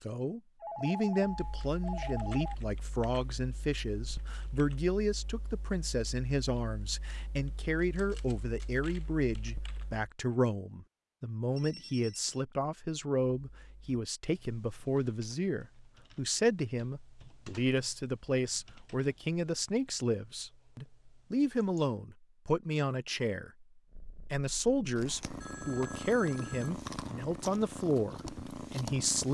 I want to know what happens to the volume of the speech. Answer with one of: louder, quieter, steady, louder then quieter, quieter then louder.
steady.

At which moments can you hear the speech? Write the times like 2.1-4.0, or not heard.
0.0-29.3.